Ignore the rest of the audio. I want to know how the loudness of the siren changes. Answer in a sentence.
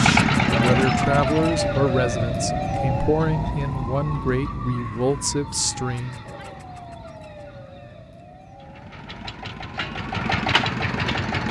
The loudness of the siren goes down.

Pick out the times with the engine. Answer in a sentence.
You can hear the engine from 0.0 to 1.8 s and from 8.6 to 11.4 s.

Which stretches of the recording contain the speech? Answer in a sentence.
You can hear the speech from 0.0 to 6.2 s.